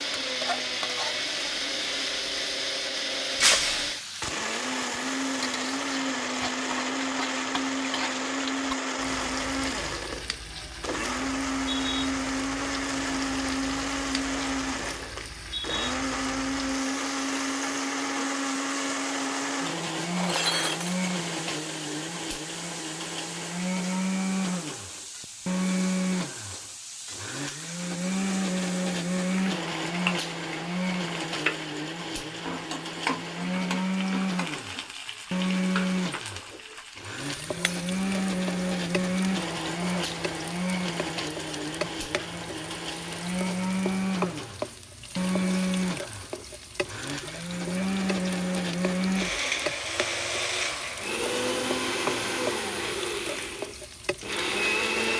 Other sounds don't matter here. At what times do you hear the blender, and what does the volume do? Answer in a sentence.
The blender can be heard from 0.0 to 55.1 s, at a steady volume.